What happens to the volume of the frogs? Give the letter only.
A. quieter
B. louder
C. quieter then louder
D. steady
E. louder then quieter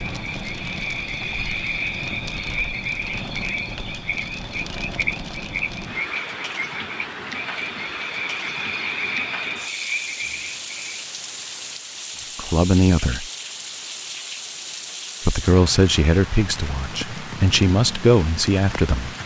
D.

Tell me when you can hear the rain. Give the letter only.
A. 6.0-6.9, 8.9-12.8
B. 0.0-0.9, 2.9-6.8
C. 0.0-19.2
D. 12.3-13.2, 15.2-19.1
C.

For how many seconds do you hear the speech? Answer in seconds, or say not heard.
5 s.